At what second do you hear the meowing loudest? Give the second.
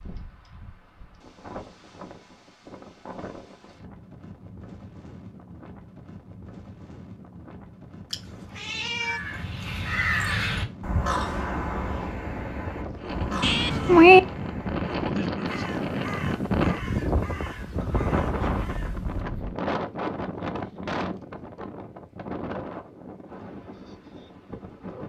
14 s.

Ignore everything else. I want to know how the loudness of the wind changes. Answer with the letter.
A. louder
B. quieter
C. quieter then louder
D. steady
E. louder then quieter
E.